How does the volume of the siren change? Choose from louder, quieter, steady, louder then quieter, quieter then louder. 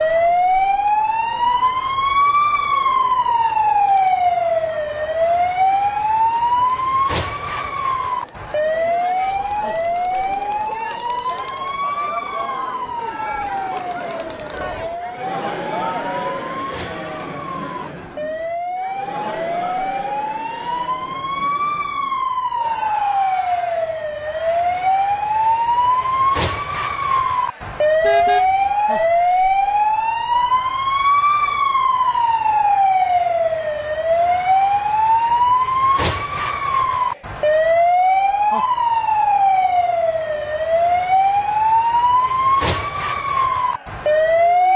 quieter then louder.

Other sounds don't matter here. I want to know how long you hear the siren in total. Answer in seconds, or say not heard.
45 s.